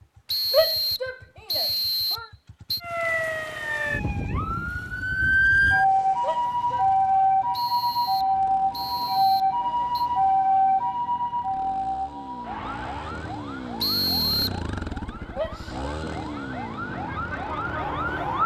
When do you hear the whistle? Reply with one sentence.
The whistle can be heard from 0.2 to 2.8 s, from 7.5 to 10.1 s and from 13.8 to 14.6 s.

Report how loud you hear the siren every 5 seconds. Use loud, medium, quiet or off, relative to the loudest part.
medium, loud, medium, medium.